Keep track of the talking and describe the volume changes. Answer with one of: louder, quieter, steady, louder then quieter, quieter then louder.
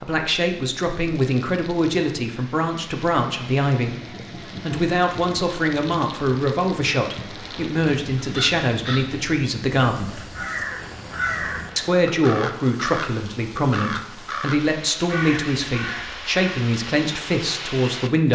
steady.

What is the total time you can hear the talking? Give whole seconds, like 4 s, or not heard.
17 s.